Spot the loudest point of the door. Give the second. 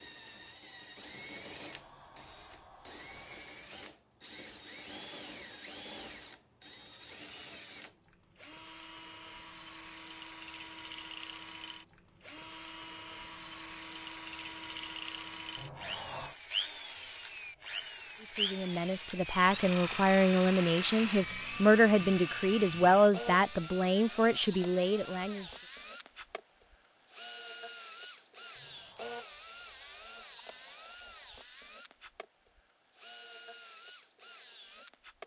16 s.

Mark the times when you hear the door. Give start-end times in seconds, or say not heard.
1.1-3.6, 15.6-16.4, 28.6-29.2.